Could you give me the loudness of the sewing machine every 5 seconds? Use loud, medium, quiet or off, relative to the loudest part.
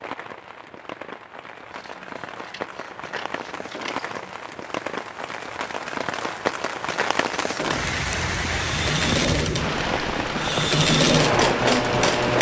off, medium, loud.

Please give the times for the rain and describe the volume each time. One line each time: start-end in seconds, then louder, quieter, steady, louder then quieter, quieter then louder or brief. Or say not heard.
0.0-12.3 louder.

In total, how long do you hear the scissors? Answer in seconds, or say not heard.
3 s.